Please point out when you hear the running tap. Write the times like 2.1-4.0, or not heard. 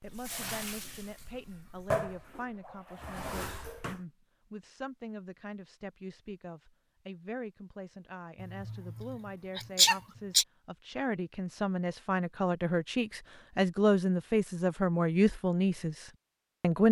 0.0-4.0.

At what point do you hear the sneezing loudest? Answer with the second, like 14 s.
10 s.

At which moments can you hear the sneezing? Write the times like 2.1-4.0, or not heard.
8.4-10.4.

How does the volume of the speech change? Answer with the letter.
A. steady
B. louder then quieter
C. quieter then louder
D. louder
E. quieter
D.